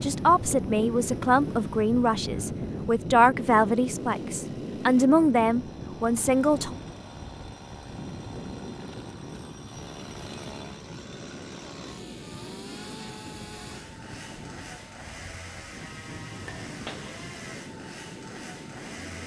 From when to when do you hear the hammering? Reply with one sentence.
The hammering can be heard from 16.1 to 17.4 s.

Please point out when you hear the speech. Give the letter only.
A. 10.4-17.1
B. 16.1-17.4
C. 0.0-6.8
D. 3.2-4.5
C.